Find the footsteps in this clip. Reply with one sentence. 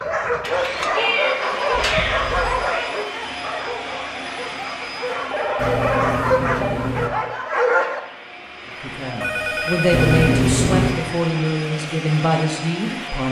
The footsteps can't be heard in this clip.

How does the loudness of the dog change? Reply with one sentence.
The loudness of the dog goes down, then up.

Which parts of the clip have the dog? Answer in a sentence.
You can hear the dog from 0.0 to 8.0 s.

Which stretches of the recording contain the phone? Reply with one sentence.
You can hear the phone from 1.7 to 2.7 s, from 5.3 to 6.8 s and from 9.2 to 10.5 s.